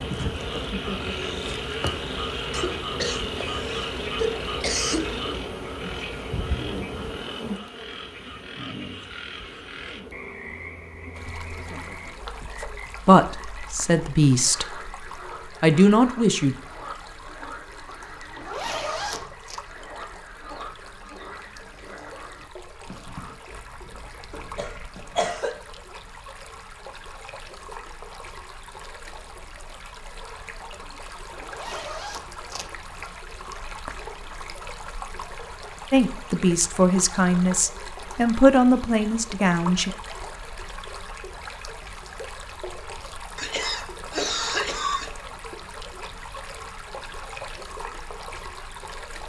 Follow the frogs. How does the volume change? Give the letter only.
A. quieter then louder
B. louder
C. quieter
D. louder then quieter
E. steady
C.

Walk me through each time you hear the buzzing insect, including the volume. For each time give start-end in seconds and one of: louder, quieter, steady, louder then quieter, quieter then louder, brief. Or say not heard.
0.0-12.7 quieter.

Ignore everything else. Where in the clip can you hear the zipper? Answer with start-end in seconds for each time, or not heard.
18.3-19.6, 31.4-32.7.